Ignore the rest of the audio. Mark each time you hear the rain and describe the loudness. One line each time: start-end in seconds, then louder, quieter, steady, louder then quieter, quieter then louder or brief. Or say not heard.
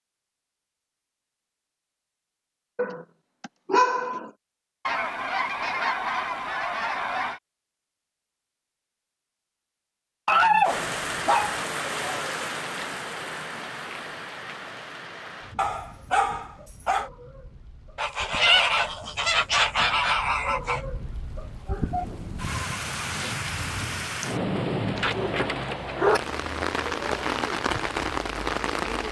10.6-29.0 quieter then louder.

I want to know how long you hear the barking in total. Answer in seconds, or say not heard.
6 s.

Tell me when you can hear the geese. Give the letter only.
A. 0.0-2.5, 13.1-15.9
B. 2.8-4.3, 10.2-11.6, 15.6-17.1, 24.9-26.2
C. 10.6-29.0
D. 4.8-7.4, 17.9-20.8
D.